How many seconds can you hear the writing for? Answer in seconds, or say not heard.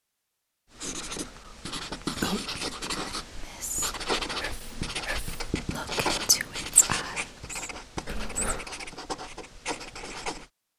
10 s.